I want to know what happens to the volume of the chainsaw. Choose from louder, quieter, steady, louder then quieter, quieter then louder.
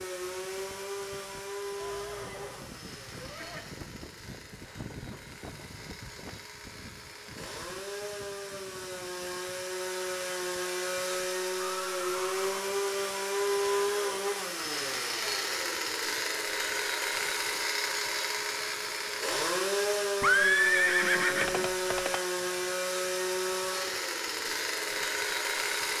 louder.